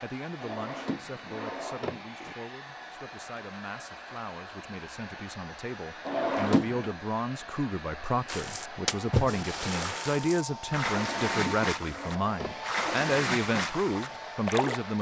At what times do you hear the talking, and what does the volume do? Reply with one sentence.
The talking can be heard from 0.0 to 14.9 s, getting louder.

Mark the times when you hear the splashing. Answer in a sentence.
The splashing can be heard from 8.2 to 14.8 s.